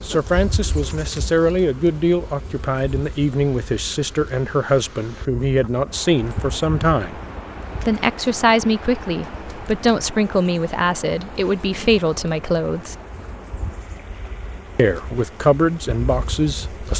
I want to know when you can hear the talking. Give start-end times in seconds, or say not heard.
0.0-7.2, 7.8-12.9, 14.8-16.9.